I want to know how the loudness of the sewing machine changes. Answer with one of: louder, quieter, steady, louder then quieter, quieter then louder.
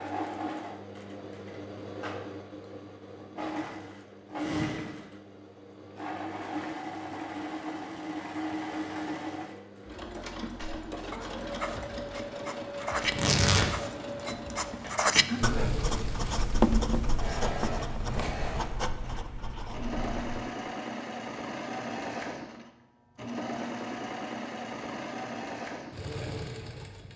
steady.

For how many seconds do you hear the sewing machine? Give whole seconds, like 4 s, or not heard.
27 s.